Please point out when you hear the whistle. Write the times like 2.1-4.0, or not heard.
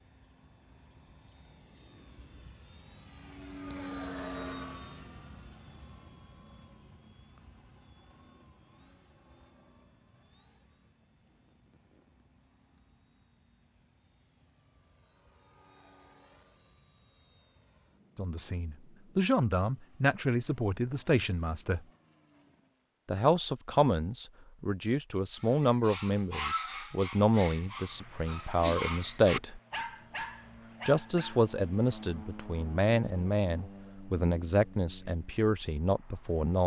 not heard.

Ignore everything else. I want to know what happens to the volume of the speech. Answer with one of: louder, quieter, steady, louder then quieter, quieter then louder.
steady.